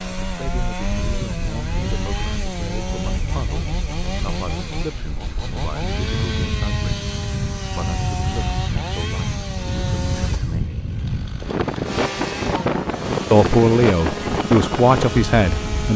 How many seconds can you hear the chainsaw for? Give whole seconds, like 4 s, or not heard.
16 s.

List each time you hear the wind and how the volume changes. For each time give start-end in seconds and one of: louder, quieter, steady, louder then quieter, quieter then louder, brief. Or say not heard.
0.1-15.9 louder.